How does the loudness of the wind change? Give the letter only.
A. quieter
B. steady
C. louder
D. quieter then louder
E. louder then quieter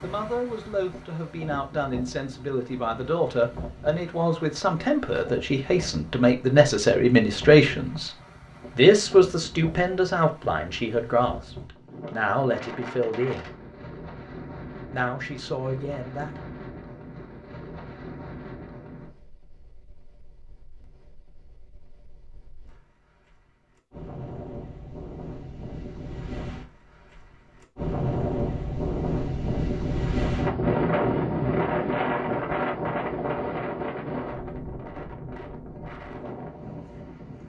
C.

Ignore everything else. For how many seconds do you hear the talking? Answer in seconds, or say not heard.
14 s.